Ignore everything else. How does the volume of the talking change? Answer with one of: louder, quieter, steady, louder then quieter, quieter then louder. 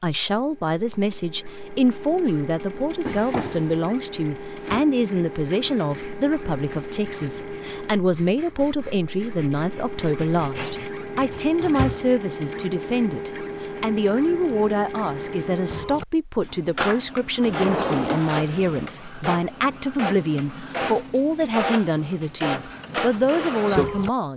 steady.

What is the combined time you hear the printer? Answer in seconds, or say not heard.
24 s.